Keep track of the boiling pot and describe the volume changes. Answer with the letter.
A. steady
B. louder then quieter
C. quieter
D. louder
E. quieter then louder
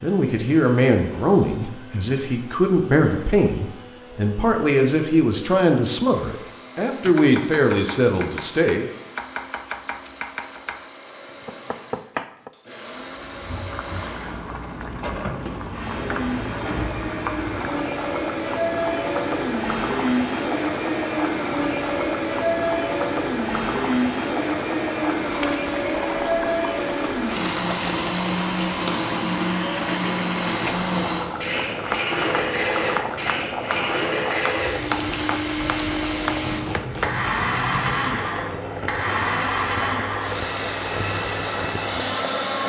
A.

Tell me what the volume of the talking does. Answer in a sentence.
The volume of the talking stays about the same.